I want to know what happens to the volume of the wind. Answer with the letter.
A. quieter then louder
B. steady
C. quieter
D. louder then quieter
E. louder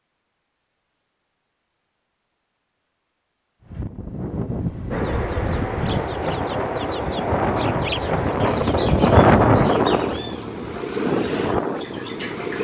D.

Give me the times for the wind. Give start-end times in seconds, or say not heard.
3.7-12.6.